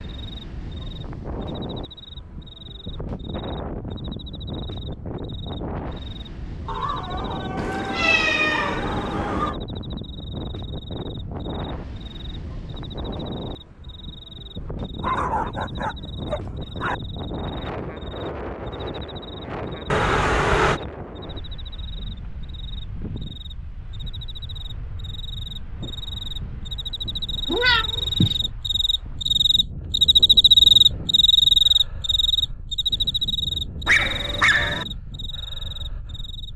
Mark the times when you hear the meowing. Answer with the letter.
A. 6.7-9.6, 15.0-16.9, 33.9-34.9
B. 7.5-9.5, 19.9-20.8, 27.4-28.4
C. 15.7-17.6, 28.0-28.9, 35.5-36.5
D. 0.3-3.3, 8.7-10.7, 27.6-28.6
B.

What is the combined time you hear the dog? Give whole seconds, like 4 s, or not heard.
6 s.